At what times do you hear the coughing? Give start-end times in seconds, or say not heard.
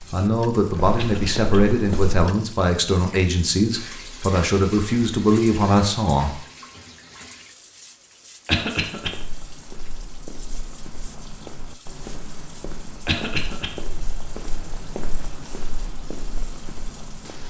0.9-1.4, 8.4-9.1, 13.1-13.7.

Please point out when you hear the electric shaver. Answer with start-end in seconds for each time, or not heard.
not heard.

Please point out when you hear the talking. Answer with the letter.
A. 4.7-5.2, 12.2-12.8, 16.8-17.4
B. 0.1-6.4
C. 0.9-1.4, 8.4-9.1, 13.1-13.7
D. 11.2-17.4
B.